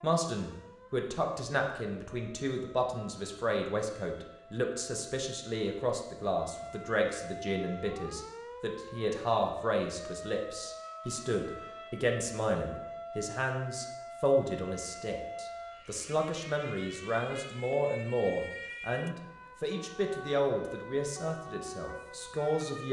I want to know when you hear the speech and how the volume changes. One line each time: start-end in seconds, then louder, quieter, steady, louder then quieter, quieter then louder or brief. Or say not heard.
0.0-22.8 steady.